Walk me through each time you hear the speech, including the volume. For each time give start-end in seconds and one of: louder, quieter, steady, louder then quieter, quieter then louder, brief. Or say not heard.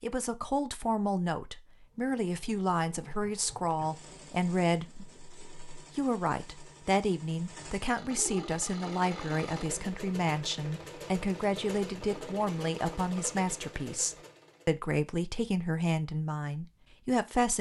0.0-17.5 steady.